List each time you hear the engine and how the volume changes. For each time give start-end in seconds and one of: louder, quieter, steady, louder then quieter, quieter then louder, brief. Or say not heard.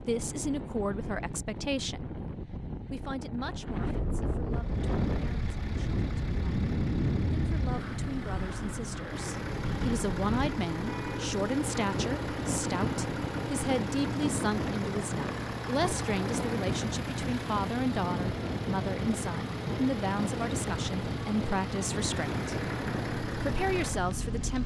4.5-24.6 louder.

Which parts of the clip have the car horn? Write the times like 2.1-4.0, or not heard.
10.8-11.3.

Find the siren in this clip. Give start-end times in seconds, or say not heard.
not heard.